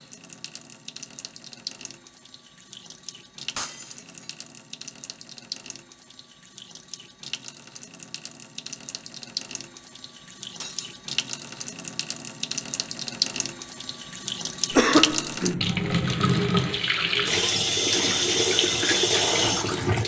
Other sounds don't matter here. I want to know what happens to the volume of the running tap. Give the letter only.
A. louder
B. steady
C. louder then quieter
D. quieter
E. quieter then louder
A.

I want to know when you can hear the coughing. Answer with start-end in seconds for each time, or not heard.
14.7-15.8.